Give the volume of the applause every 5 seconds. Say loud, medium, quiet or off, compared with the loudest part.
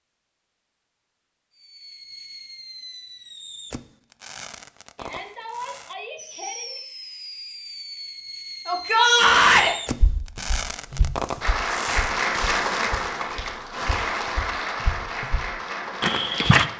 off, off, loud, medium.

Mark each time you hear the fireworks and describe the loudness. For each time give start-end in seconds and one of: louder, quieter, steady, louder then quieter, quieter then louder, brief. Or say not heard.
1.6-12.8 louder.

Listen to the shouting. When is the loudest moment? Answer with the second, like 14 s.
9 s.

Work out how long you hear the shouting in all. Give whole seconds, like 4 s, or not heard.
3 s.